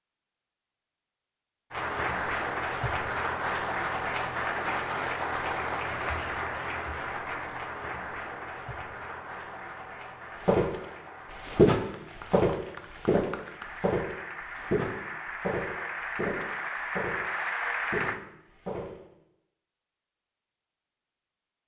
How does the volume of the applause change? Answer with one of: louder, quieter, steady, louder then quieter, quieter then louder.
quieter then louder.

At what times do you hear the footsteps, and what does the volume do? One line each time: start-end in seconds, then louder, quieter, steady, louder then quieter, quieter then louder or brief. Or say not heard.
10.4-19.0 quieter.